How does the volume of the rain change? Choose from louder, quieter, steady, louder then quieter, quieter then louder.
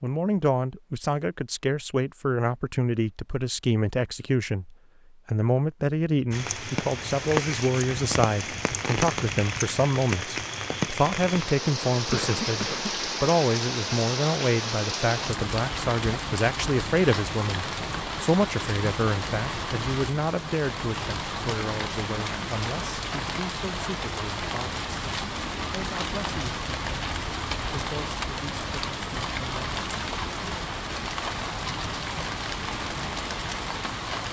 steady.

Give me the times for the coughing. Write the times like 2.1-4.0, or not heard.
12.1-13.0.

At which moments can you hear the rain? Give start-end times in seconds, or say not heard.
6.3-34.2.